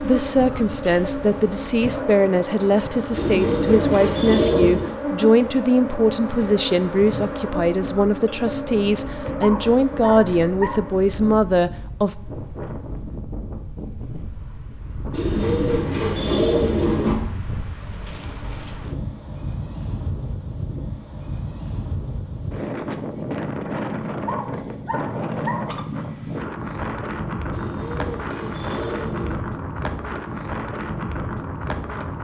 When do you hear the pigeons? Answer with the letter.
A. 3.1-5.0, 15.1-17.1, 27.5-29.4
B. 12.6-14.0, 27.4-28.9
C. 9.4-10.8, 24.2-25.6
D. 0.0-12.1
A.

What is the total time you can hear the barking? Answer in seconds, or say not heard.
3 s.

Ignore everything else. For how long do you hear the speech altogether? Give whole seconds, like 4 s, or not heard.
12 s.